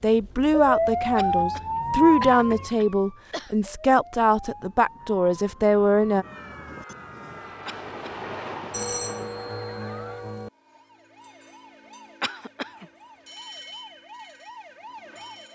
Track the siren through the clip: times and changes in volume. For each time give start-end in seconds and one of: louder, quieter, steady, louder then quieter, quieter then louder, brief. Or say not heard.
0.0-15.5 quieter.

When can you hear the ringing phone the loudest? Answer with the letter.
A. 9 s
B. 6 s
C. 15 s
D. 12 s
A.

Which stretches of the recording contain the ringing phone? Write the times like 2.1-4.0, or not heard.
8.7-10.5.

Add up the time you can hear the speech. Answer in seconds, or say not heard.
6 s.